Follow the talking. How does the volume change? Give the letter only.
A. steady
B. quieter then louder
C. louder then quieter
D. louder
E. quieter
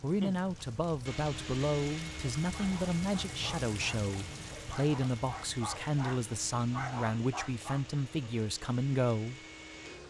A.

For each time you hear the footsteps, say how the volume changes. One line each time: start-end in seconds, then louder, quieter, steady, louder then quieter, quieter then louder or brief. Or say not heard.
not heard.